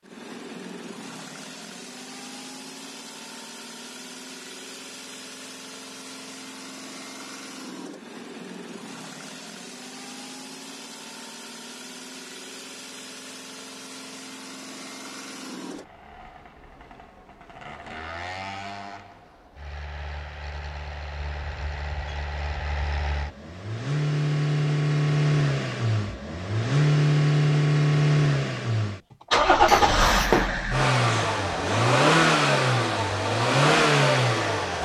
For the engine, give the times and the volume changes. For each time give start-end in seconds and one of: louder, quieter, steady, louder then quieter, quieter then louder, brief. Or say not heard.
0.0-34.7 louder.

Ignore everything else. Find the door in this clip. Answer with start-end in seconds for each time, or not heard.
29.6-30.5.